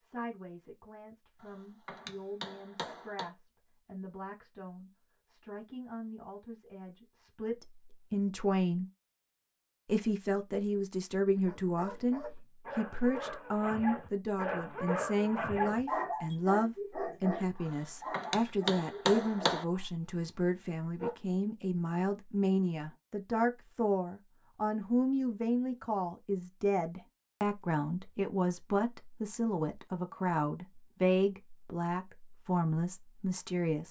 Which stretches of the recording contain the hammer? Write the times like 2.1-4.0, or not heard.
1.4-3.3, 17.6-19.6.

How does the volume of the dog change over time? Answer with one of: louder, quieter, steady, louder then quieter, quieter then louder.
louder then quieter.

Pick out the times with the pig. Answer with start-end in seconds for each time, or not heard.
not heard.